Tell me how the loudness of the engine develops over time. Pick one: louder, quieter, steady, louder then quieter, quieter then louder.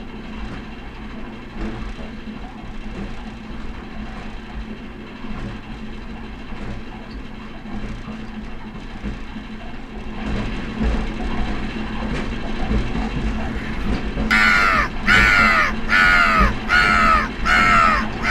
louder.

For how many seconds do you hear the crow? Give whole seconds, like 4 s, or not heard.
5 s.